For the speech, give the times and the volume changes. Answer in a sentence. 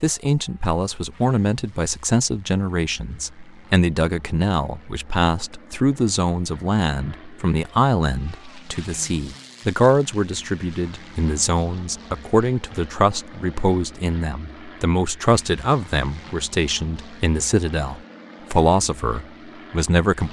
The speech can be heard from 0.0 to 20.2 s, at a steady volume.